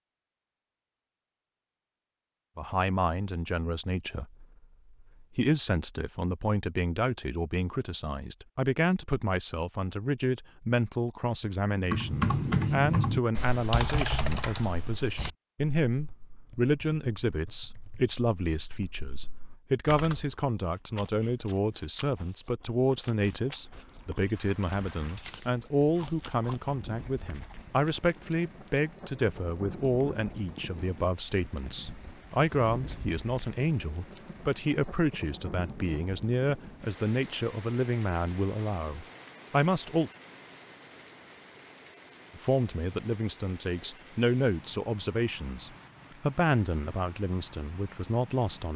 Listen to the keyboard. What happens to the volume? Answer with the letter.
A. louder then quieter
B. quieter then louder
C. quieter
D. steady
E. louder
B.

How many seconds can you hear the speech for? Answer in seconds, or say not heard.
43 s.